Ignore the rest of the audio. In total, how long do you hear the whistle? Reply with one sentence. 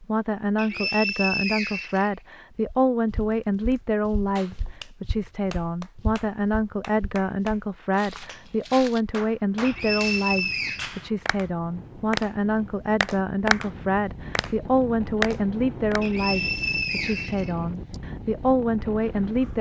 The whistle can be heard for 5 seconds in total.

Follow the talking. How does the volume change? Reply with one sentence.
The loudness of the talking stays about the same.